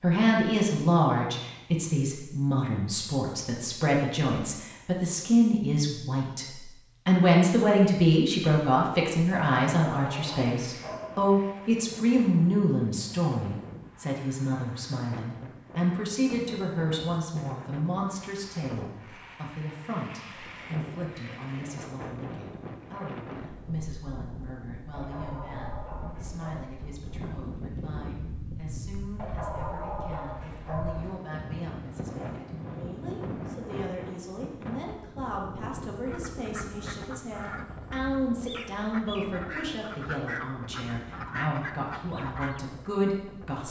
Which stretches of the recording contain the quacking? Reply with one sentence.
The quacking can be heard from 36.0 to 42.6 s.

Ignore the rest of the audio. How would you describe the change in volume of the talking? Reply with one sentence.
The loudness of the talking goes down, then up.